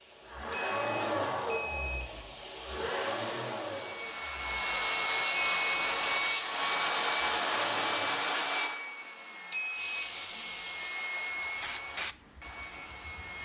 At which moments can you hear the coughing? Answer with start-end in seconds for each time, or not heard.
not heard.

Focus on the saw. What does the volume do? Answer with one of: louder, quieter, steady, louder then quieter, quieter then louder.
quieter.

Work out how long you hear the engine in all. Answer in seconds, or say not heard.
8 s.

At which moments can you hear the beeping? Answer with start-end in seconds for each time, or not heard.
0.5-2.2, 5.3-5.9, 9.5-10.1.